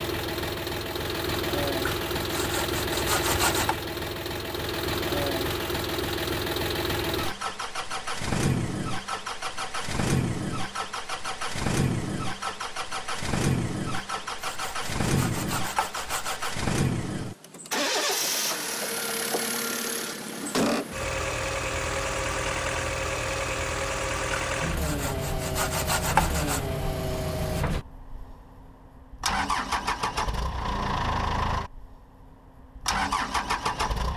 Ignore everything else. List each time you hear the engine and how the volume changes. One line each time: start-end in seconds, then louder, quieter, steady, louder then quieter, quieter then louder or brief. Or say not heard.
0.0-34.1 steady.